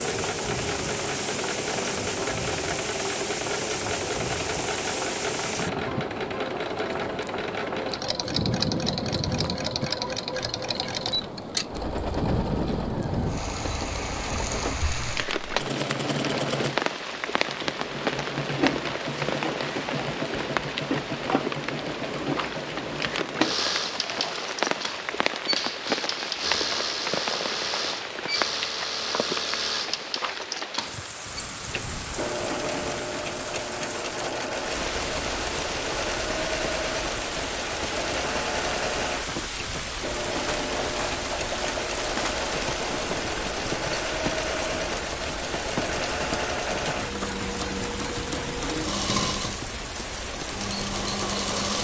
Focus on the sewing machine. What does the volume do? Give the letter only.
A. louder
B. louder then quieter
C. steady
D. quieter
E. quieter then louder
C.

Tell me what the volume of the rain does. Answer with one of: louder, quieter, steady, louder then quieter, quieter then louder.
steady.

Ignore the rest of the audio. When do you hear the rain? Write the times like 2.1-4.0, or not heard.
0.0-51.7.